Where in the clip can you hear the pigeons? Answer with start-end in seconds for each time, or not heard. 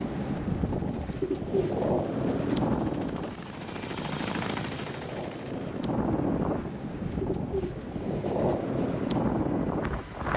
0.9-2.7, 6.9-8.7.